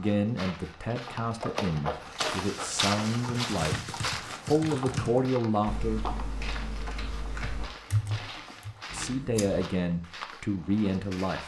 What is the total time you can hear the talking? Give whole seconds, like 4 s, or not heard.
9 s.